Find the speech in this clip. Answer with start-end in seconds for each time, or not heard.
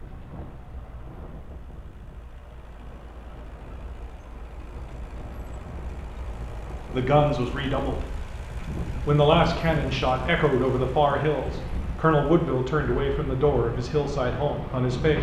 6.9-8.1, 9.1-15.1.